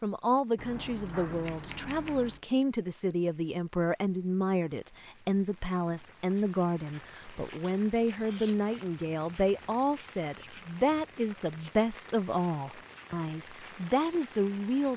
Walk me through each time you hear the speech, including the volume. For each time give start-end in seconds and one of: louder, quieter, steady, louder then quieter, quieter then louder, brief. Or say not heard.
0.0-14.9 steady.